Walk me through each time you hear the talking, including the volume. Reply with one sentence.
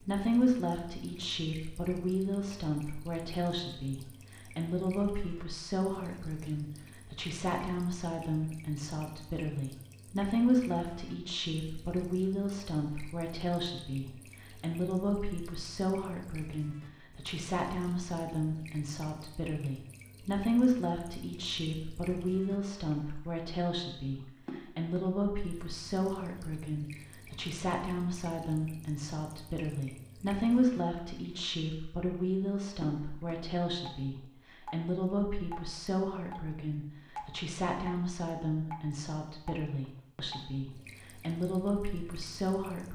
The talking can be heard from 0.0 to 42.9 s, at a steady volume.